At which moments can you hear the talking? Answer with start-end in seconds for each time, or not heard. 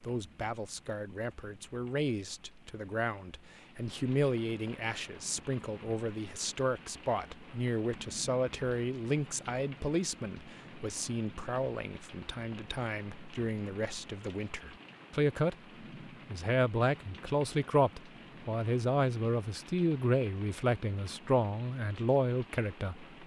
0.0-15.6, 16.3-23.1.